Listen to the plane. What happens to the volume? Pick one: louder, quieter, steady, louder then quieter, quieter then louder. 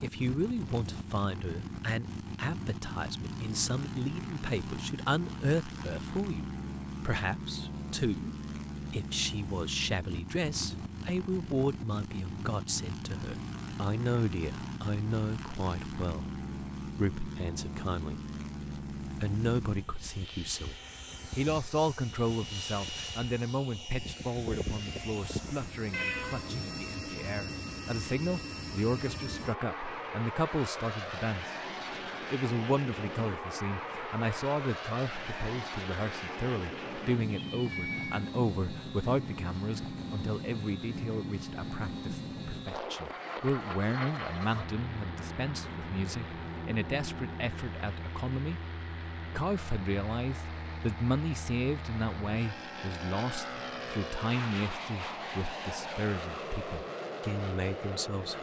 steady.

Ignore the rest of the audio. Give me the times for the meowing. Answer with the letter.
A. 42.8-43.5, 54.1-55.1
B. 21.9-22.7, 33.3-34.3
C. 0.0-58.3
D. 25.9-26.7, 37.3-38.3
D.